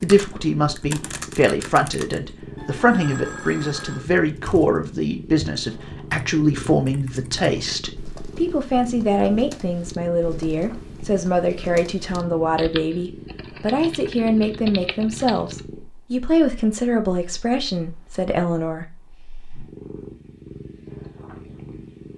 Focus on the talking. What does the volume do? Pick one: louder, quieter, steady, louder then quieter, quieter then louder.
steady.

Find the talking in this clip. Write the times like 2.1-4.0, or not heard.
0.0-18.9.